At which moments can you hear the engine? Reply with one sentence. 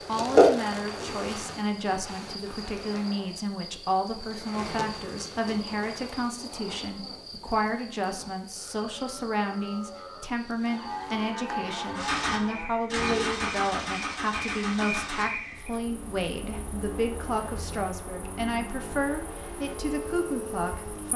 You can hear the engine from 11.9 to 21.1 s.